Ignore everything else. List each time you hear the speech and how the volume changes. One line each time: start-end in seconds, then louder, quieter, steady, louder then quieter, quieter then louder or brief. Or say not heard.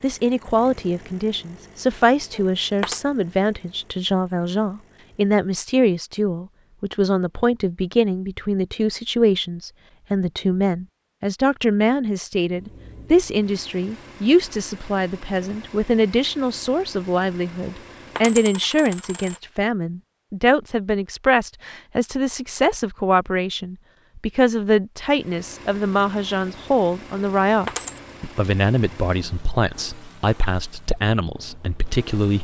0.0-32.4 steady.